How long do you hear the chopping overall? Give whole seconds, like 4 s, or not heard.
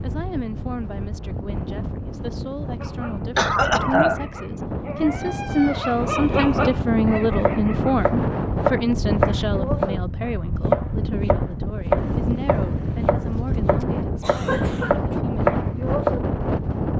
9 s.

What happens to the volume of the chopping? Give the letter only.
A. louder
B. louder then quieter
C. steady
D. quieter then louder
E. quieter
D.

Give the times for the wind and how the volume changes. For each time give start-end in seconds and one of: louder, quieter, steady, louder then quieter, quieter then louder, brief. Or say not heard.
0.0-16.9 louder.